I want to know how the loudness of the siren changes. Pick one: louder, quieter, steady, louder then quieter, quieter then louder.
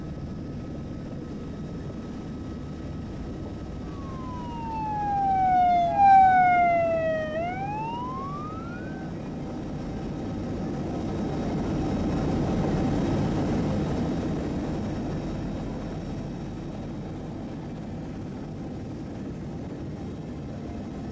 louder then quieter.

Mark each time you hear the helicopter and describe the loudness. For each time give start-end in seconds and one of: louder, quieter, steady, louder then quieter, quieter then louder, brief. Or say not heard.
0.0-21.0 louder then quieter.